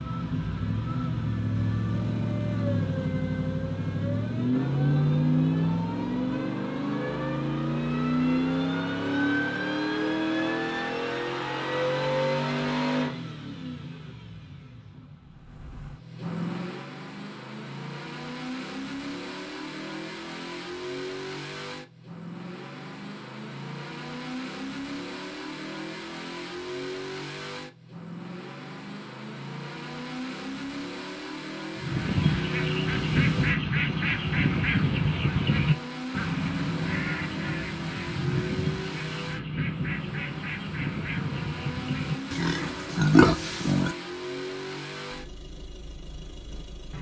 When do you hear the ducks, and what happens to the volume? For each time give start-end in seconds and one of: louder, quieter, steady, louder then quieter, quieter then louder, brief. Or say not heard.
31.8-42.9 quieter.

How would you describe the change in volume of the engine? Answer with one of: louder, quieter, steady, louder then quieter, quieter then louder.
quieter.